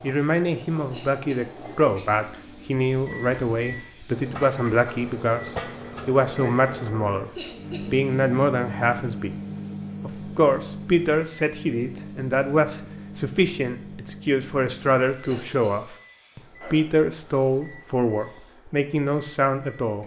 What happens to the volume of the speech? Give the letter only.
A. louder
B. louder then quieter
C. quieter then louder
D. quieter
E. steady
E.